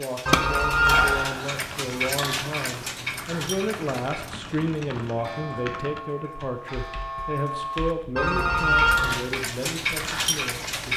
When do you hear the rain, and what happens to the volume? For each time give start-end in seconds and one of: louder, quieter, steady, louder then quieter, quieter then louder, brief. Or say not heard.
not heard.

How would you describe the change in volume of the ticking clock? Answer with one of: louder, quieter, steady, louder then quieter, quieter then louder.
quieter then louder.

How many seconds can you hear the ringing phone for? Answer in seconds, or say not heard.
2 s.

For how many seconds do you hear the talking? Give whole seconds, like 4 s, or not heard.
11 s.